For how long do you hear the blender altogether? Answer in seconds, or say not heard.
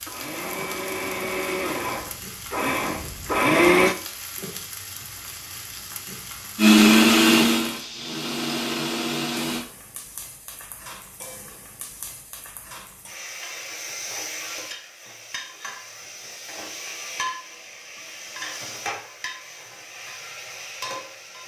7 s.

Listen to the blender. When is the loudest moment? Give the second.
7 s.